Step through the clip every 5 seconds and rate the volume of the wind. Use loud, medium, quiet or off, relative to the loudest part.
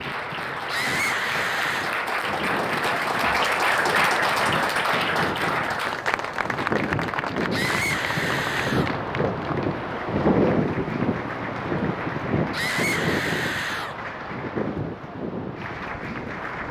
medium, loud, loud, medium.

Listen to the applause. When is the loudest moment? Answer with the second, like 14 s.
4 s.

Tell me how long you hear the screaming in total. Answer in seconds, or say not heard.
4 s.